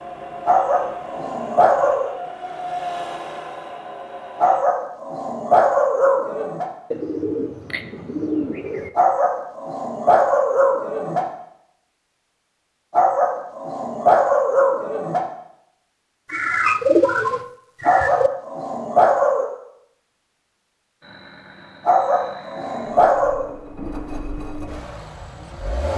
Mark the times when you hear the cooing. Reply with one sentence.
You can hear the cooing from 6.9 to 8.9 s and from 16.3 to 18.3 s.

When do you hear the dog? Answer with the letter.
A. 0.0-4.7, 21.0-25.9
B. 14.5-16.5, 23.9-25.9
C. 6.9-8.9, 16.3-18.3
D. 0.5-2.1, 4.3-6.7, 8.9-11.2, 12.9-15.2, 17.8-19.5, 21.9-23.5
D.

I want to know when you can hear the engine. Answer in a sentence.
You can hear the engine from 0.0 to 4.7 s and from 21.0 to 25.9 s.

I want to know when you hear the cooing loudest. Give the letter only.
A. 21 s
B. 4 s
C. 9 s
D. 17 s
D.